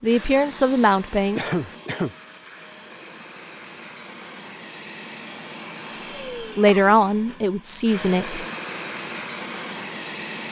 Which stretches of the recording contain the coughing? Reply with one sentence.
The coughing can be heard from 1.4 to 2.1 s and from 6.7 to 7.4 s.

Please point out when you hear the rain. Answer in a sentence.
You can't hear the rain here.